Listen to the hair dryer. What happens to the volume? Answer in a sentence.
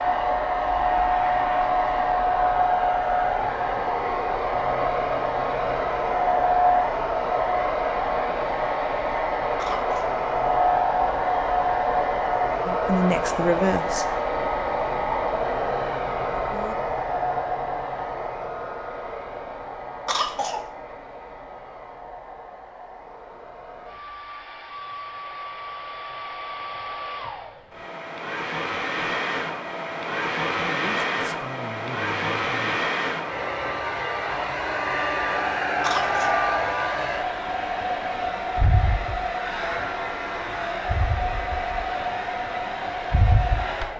The loudness of the hair dryer goes down, then up.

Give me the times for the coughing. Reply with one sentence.
The coughing can be heard from 9.6 to 10.2 s, from 20.1 to 20.7 s and from 35.8 to 36.5 s.